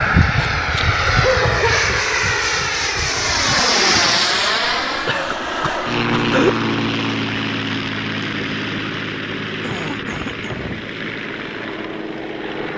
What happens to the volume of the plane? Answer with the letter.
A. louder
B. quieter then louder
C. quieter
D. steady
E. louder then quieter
C.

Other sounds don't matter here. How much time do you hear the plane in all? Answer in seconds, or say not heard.
13 s.